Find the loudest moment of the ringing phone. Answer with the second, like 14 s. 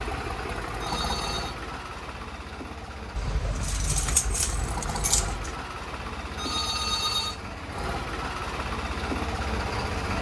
7 s.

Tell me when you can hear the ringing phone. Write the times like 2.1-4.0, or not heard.
0.8-1.6, 6.3-7.4.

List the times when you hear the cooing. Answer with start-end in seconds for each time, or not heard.
not heard.